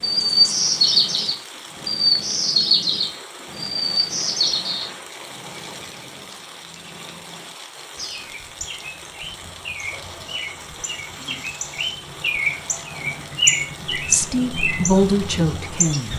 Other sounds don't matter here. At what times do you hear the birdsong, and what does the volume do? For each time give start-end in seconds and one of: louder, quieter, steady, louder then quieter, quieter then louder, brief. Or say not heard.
0.0-16.1 quieter then louder.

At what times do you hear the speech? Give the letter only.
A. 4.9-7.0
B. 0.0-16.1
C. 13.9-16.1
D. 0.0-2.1
C.